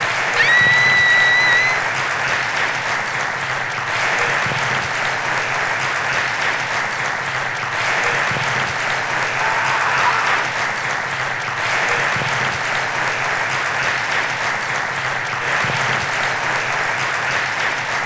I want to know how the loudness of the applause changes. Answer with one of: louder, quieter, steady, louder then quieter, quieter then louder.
steady.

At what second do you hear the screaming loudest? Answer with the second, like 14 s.
1 s.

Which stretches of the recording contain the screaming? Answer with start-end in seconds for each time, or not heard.
0.3-1.8, 9.4-10.5.